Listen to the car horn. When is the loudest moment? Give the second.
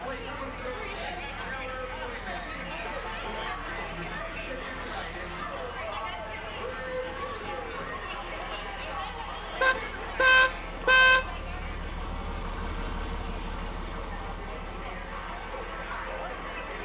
11 s.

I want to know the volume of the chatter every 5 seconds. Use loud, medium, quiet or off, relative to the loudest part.
loud, loud, medium, loud.